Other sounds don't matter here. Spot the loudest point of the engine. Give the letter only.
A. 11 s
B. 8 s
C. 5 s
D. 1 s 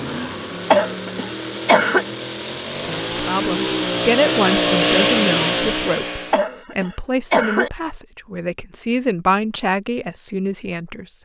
C.